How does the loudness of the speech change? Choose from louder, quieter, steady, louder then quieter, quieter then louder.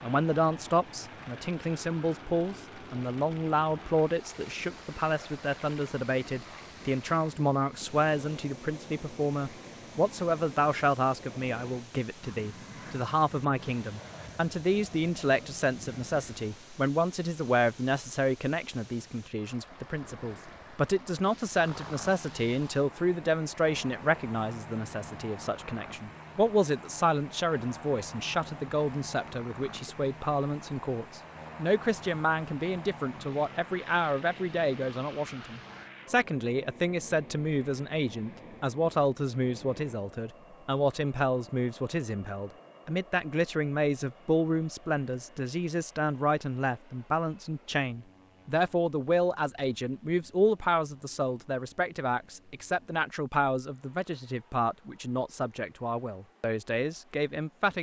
steady.